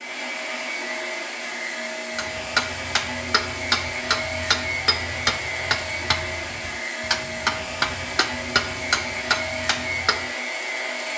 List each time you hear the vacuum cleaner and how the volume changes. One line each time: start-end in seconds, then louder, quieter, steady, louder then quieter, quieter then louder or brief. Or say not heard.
0.0-11.1 steady.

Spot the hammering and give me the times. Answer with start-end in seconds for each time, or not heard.
2.1-10.2.